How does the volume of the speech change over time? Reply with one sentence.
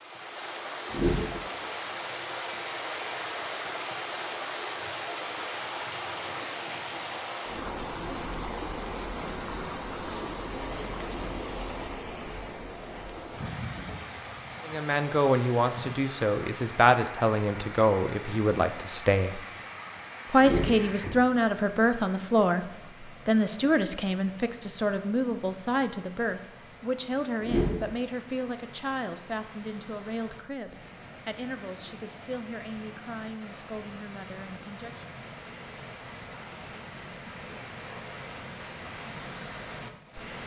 The volume of the speech goes down.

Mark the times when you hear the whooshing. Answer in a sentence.
You can hear the whooshing from 0.8 to 1.4 s, from 20.4 to 20.9 s and from 27.4 to 27.9 s.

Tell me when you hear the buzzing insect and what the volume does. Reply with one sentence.
The buzzing insect can't be heard in this clip.